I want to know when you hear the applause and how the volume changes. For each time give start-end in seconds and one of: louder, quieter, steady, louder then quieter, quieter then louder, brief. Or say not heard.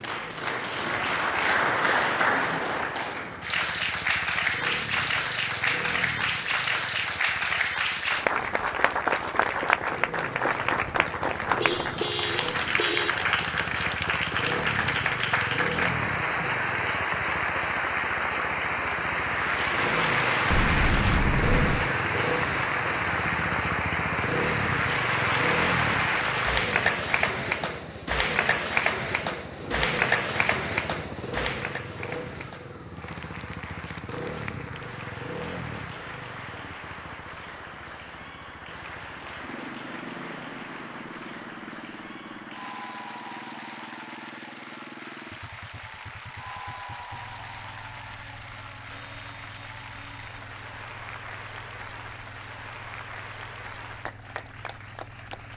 0.0-55.5 quieter.